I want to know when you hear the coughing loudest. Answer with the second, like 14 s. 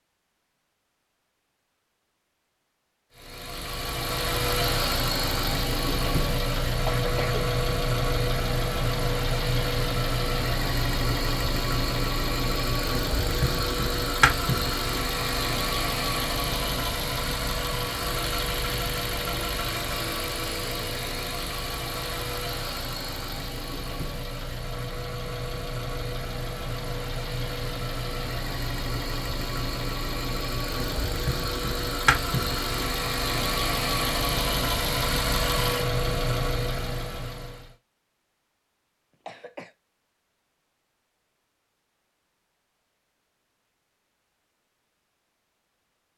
7 s.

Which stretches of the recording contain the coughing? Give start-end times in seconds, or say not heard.
6.8-7.5, 39.2-39.8.